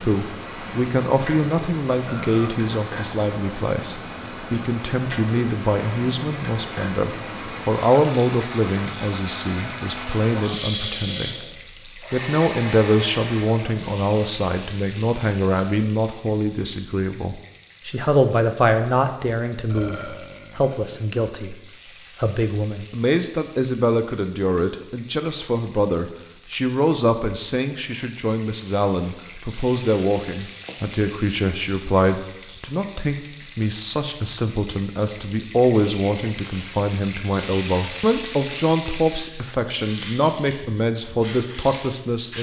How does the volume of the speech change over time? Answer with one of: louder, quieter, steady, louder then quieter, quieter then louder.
steady.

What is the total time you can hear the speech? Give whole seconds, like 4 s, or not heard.
42 s.